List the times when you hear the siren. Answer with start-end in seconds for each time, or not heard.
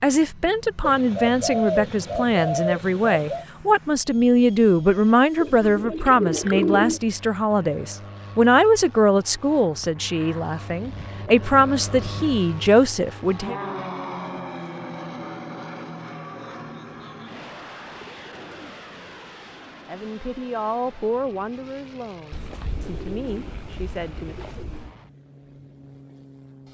not heard.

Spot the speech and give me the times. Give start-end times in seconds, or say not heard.
0.0-13.6, 19.9-24.5.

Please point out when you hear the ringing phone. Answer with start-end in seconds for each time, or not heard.
not heard.